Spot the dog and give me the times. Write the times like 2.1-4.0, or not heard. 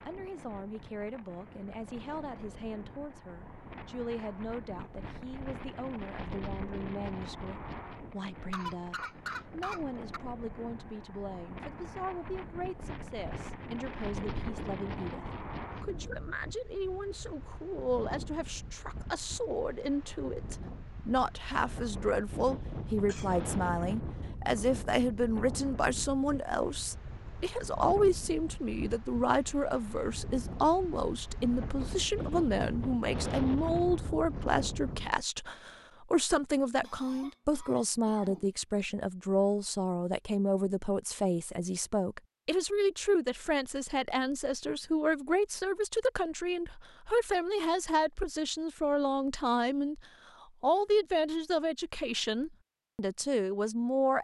not heard.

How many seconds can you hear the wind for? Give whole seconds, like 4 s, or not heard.
35 s.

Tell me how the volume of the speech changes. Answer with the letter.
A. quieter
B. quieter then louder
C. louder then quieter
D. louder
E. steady
D.